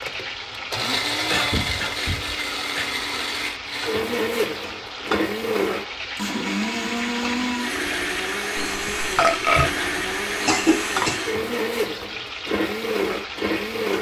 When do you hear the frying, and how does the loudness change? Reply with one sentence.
You can hear the frying from 0.0 to 13.9 s, at a steady volume.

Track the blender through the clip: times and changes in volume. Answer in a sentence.
The blender can be heard from 0.0 to 13.9 s, at a steady volume.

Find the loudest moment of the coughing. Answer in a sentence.
The volume of the coughing peaks at 11 seconds.